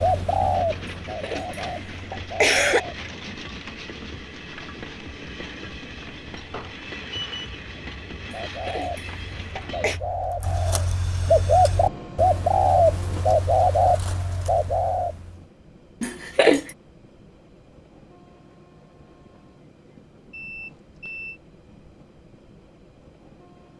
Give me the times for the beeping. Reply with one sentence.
You can hear the beeping from 6.5 to 7.5 s and from 20.3 to 21.4 s.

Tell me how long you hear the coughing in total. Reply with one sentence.
The coughing can be heard for 4 seconds in total.